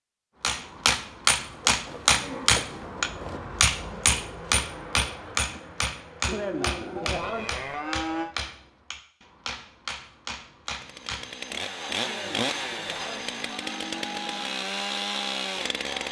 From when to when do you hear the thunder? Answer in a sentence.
You can't hear the thunder here.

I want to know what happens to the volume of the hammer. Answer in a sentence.
The loudness of the hammer goes down.